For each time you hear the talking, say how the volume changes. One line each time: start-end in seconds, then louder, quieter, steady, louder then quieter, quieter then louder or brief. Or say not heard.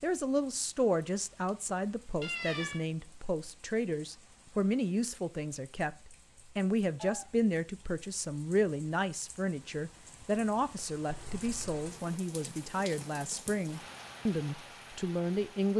0.0-15.7 steady.